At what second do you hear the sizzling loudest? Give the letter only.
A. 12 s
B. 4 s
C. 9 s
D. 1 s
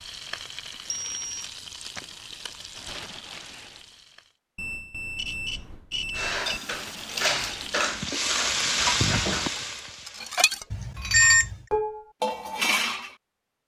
C.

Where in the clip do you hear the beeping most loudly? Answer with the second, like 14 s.
11 s.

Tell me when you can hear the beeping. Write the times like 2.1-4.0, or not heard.
0.9-1.4, 4.5-6.6, 10.7-11.6.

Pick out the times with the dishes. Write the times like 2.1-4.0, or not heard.
6.2-13.2.